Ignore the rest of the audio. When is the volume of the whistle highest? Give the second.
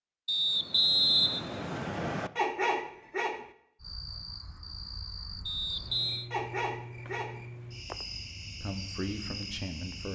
1 s.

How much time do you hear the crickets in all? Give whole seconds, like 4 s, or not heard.
6 s.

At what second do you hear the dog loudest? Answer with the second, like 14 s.
3 s.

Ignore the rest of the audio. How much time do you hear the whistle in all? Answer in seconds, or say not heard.
3 s.